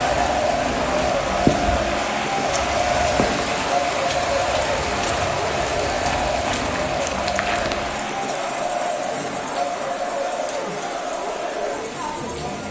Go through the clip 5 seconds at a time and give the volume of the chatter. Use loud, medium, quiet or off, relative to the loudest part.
loud, loud, medium.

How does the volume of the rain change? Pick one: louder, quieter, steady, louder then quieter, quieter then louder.
quieter.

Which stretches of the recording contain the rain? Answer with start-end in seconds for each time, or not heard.
0.0-12.6.